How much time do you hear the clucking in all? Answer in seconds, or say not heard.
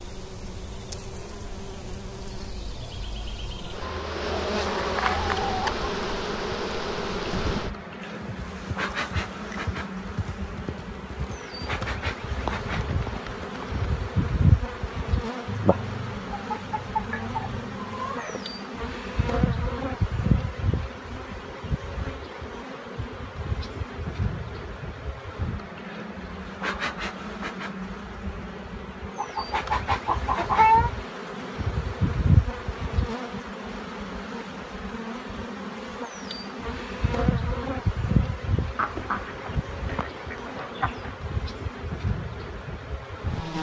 9 s.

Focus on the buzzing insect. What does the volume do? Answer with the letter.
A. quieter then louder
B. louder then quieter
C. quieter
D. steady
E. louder
D.